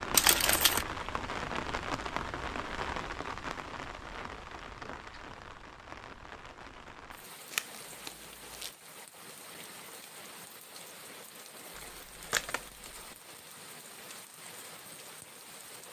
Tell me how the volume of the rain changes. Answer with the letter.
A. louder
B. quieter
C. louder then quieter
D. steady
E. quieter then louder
B.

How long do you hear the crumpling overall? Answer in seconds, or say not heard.
3 s.